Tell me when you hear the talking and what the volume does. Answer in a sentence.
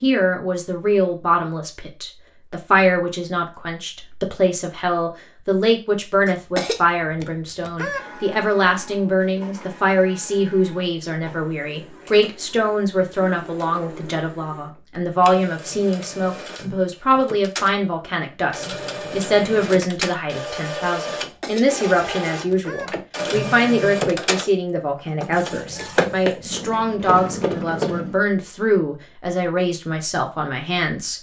You can hear the talking from 0.0 to 31.1 s, at a steady volume.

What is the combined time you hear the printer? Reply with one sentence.
You can hear the printer for 20 seconds altogether.